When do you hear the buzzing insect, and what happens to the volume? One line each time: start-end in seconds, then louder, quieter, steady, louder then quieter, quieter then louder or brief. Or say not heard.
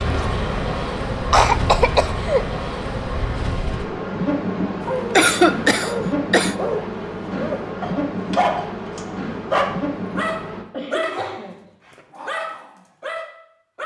0.0-10.7 steady.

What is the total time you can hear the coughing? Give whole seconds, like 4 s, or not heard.
4 s.